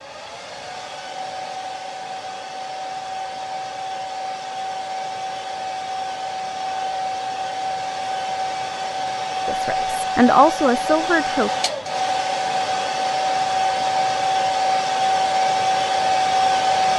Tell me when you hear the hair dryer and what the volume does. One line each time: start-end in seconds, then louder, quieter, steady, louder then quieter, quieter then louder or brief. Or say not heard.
0.0-16.9 louder.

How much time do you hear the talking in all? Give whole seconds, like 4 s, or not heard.
2 s.